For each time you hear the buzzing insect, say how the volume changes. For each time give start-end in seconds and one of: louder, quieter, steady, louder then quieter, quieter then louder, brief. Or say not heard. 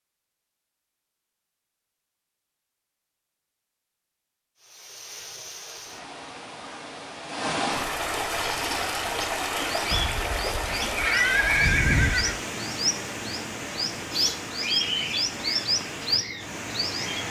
not heard.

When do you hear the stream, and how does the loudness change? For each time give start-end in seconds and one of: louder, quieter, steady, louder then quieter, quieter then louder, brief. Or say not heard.
4.5-17.2 louder then quieter.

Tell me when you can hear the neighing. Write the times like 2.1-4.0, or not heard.
9.9-12.4.